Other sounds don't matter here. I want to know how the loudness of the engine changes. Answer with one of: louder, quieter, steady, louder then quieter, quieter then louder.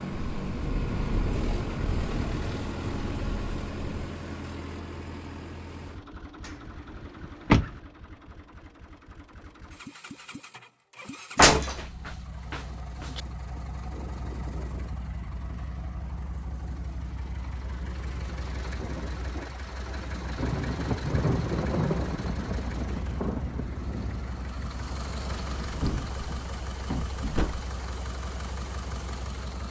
quieter then louder.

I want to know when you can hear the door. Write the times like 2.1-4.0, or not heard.
7.2-7.8, 11.3-13.2, 25.2-27.6.